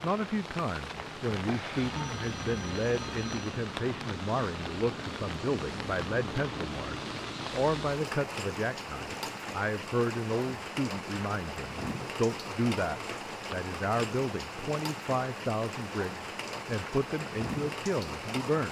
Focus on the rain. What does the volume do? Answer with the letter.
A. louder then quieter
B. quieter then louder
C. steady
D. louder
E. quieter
C.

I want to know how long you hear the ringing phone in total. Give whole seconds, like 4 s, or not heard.
2 s.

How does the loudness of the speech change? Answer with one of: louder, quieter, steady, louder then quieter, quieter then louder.
steady.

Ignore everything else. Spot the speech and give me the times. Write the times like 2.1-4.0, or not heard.
0.0-18.6.